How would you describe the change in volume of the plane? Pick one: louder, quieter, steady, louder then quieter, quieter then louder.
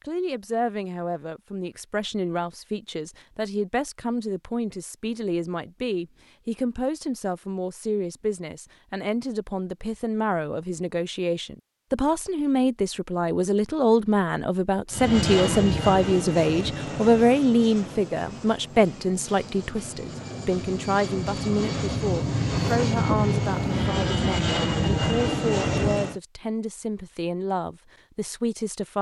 quieter then louder.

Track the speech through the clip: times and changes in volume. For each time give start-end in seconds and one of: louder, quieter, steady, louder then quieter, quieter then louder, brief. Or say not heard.
0.0-28.9 louder then quieter.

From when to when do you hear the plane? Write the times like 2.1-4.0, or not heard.
14.9-26.2.